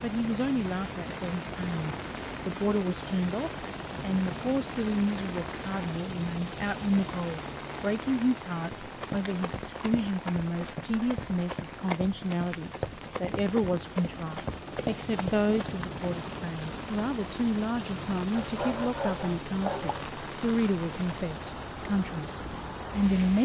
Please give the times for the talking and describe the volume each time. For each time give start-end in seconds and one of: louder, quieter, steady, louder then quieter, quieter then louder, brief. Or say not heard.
0.0-23.3 steady.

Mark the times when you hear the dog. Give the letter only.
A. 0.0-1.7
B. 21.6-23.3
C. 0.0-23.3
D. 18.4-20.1
D.